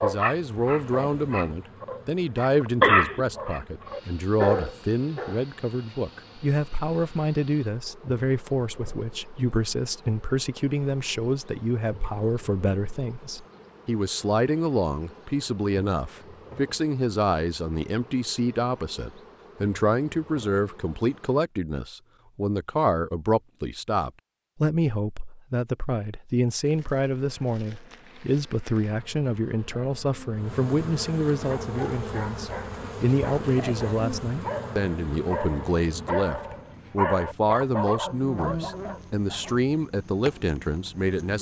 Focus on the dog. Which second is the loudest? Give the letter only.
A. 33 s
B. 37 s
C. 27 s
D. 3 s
D.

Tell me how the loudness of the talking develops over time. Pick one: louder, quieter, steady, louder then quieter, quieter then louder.
steady.